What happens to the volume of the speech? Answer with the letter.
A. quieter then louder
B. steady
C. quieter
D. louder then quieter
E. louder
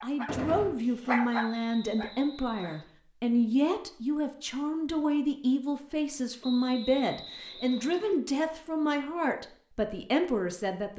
B.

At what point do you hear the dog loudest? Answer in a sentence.
The volume of the dog peaks at 1 second.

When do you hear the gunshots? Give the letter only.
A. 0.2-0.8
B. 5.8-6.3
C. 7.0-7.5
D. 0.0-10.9
A.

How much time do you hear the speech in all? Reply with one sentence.
The speech can be heard for 11 seconds in total.